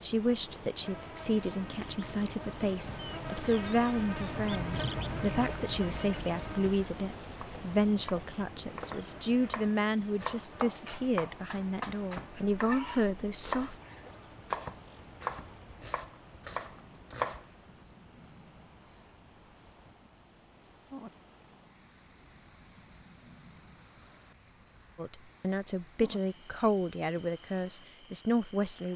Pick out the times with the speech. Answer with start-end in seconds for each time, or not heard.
0.0-13.8, 24.9-28.9.